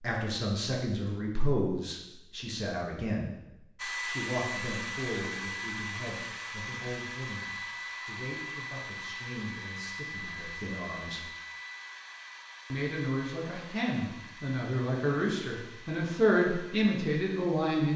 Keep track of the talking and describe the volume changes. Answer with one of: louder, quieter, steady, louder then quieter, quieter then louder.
quieter then louder.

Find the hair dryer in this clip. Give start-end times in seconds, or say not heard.
3.8-17.9.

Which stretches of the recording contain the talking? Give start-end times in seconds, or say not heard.
0.0-11.2, 12.7-17.9.